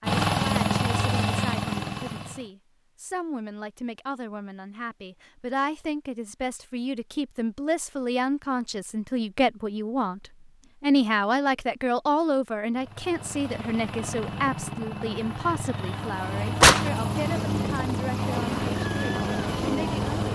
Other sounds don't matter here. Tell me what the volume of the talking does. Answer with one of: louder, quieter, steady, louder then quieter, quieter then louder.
louder then quieter.